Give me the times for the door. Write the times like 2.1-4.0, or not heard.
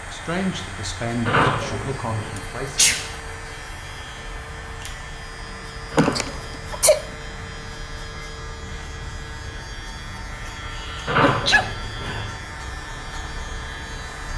1.2-2.3, 5.9-6.6, 11.1-12.3.